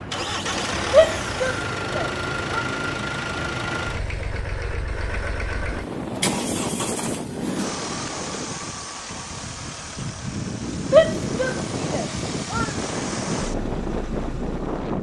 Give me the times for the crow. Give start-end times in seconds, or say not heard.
not heard.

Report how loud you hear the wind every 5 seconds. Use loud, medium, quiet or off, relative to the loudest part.
off, loud, loud.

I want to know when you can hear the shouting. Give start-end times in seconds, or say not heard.
0.9-2.6, 10.9-12.7.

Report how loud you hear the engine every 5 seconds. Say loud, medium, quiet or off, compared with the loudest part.
loud, loud, medium.